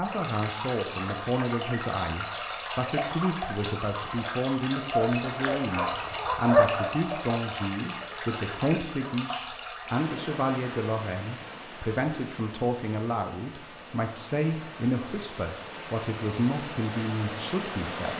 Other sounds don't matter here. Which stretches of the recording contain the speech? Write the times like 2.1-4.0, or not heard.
0.0-18.1.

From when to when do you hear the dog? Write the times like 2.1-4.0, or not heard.
4.9-7.0.